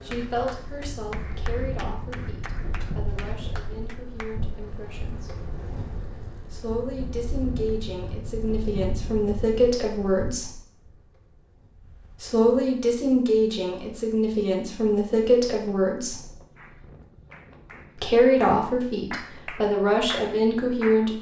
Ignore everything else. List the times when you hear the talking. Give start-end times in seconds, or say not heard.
0.0-5.5, 6.5-10.6, 12.2-16.3, 17.9-21.1.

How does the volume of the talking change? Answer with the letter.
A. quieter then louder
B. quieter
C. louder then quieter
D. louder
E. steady
D.